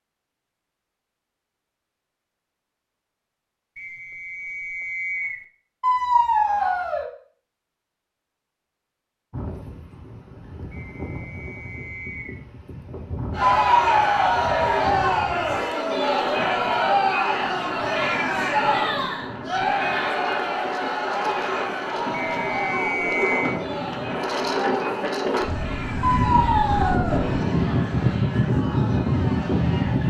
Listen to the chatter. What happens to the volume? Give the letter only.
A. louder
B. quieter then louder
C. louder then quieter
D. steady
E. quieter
E.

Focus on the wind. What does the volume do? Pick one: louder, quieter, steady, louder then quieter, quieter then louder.
louder.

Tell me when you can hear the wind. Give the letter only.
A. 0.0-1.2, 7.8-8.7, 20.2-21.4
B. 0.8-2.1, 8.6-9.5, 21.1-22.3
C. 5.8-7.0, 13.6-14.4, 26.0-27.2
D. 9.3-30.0
D.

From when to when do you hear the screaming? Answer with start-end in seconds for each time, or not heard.
5.8-7.0, 13.6-14.4, 26.0-27.2.